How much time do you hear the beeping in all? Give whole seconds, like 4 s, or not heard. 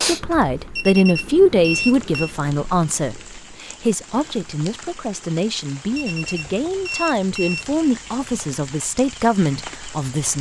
4 s.